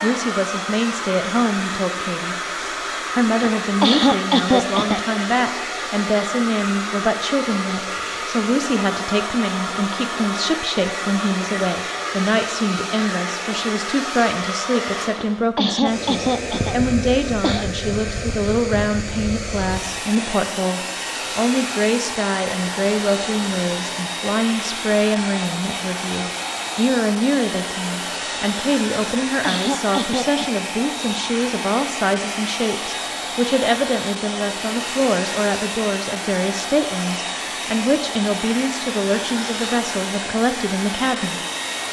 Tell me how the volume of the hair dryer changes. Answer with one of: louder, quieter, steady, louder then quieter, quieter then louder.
steady.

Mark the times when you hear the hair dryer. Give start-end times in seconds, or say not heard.
0.0-41.8.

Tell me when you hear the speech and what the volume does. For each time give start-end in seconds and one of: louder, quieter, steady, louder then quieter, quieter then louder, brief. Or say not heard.
0.0-2.4 brief
3.1-41.4 steady.